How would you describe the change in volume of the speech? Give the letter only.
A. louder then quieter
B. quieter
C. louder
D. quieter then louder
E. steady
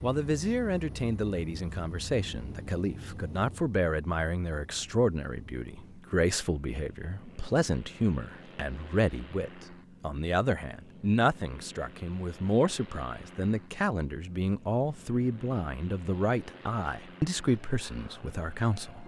E.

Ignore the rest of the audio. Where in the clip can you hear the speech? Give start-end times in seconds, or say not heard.
0.0-19.0.